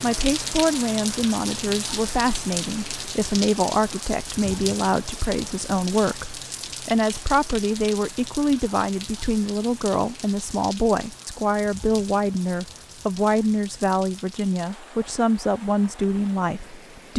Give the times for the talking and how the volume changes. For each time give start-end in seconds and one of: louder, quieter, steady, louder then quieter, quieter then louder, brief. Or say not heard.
0.0-17.1 steady.